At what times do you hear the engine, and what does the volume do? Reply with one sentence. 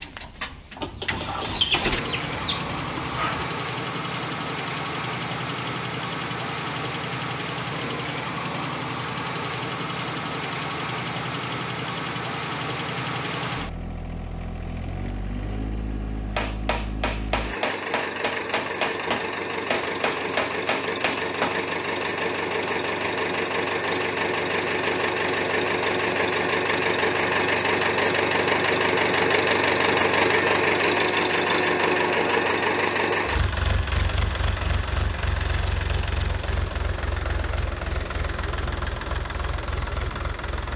You can hear the engine from 0.0 to 40.7 s, getting louder then quieter.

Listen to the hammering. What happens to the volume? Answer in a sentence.
The volume of the hammering stays about the same.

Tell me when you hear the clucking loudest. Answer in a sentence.
The loudest moment of the clucking is at 2 seconds.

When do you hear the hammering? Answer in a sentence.
You can hear the hammering from 16.4 to 21.6 s.